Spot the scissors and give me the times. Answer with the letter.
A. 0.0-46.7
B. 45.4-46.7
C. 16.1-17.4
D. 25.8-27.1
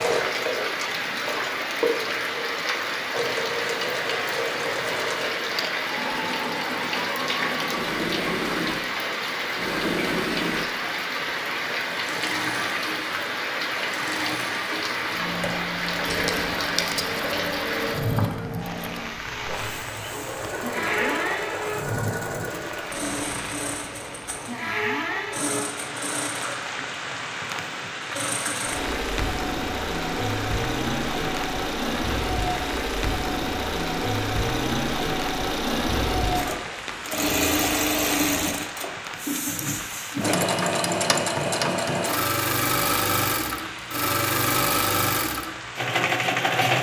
C.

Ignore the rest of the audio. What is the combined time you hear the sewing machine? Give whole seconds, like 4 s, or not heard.
47 s.